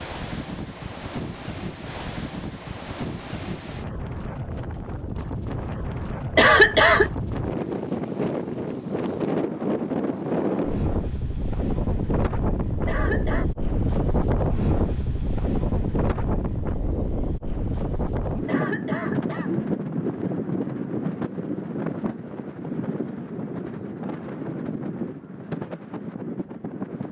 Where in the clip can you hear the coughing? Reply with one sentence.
You can hear the coughing from 6.3 to 7.1 s, from 12.8 to 13.4 s and from 18.4 to 19.6 s.